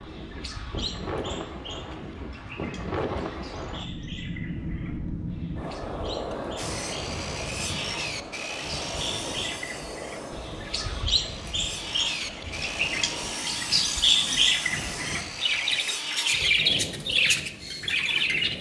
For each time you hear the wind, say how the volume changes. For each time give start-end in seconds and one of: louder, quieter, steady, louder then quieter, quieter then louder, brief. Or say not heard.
0.0-18.5 quieter.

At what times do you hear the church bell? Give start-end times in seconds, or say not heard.
not heard.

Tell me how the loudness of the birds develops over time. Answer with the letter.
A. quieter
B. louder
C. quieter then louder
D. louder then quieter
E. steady
B.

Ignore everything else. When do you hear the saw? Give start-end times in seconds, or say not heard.
6.5-16.5.